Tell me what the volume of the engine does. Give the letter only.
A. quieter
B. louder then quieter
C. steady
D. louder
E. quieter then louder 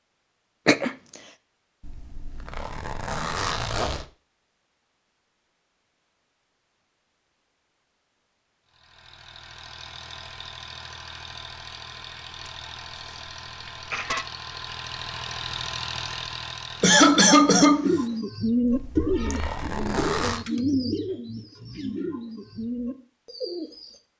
D.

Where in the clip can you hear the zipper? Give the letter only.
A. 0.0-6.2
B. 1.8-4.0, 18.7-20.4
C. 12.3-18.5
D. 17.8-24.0
B.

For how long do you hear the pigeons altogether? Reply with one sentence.
You can hear the pigeons for 6 seconds altogether.